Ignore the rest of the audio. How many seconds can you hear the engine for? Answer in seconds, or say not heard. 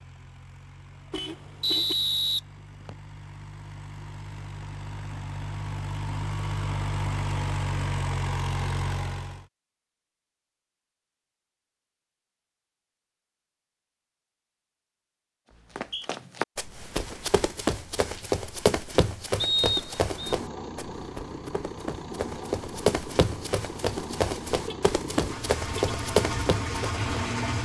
17 s.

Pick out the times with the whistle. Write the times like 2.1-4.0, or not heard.
1.6-3.0, 15.5-16.1, 19.4-20.4.